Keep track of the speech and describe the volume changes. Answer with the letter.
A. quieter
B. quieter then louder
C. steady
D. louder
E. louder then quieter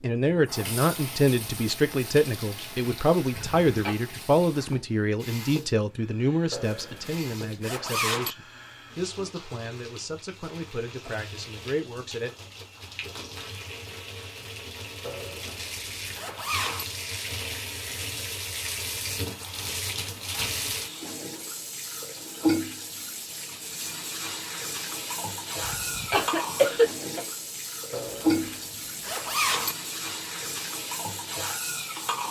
A.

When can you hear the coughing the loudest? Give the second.
27 s.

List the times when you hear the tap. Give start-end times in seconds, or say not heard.
0.2-32.2.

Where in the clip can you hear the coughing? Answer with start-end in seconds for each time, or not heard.
3.3-4.0, 25.6-27.2.